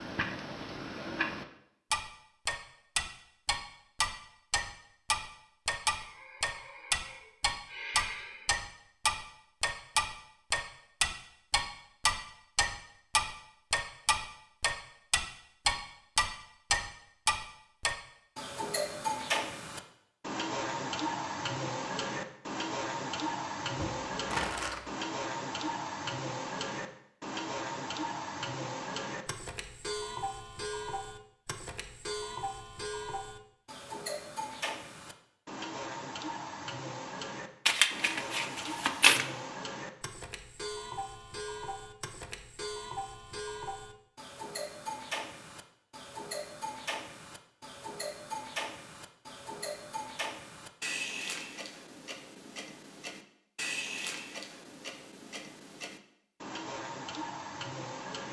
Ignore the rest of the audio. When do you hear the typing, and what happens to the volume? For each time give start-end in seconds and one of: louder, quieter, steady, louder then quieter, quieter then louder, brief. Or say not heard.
not heard.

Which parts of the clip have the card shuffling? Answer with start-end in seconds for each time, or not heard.
23.8-24.9, 37.6-39.2.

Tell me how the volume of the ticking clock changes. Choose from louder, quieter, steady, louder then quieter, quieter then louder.
quieter.